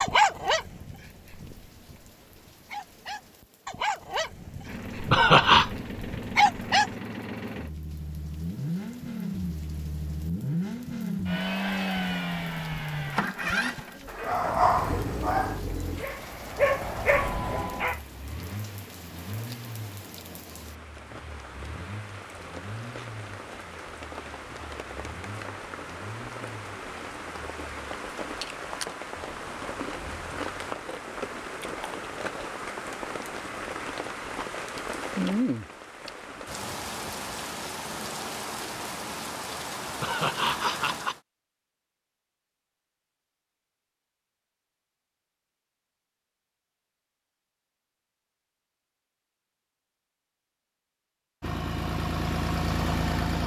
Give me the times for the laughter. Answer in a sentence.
You can hear the laughter from 5.1 to 5.7 s and from 40.0 to 41.1 s.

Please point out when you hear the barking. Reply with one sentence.
You can hear the barking from 0.0 to 6.9 s and from 14.2 to 17.9 s.